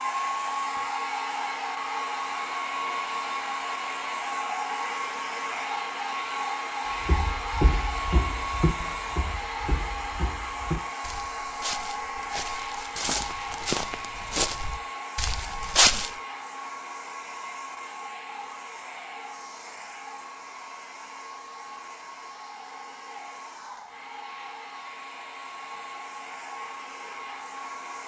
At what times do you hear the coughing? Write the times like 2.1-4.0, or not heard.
not heard.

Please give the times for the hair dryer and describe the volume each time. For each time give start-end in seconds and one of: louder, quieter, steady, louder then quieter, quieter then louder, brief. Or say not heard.
0.0-28.0 quieter.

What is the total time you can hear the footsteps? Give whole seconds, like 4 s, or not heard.
9 s.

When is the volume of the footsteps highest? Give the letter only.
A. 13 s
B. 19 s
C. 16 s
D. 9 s
C.